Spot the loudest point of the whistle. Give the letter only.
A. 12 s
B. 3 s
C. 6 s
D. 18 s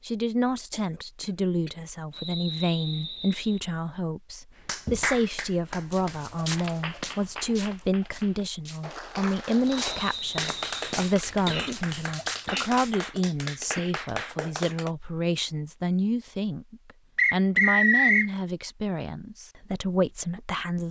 D.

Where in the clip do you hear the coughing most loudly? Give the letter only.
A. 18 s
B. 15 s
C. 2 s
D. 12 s
D.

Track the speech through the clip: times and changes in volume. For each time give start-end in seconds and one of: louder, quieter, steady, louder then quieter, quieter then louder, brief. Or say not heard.
0.0-20.8 steady.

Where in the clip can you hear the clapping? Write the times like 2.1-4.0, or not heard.
4.5-14.9.